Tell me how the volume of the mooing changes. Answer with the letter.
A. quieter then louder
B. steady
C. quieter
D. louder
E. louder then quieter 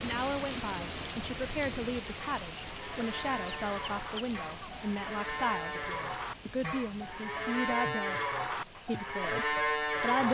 D.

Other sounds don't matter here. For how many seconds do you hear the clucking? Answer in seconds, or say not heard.
2 s.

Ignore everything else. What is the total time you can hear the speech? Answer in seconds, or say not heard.
10 s.